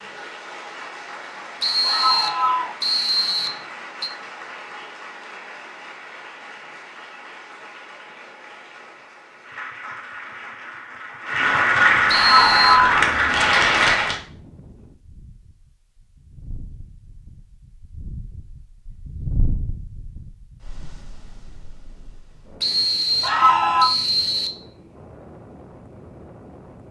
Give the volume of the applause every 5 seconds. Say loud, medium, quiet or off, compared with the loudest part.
quiet, quiet, loud, off, off, off.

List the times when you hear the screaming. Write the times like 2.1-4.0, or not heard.
1.8-2.8, 12.1-13.1, 23.2-23.9.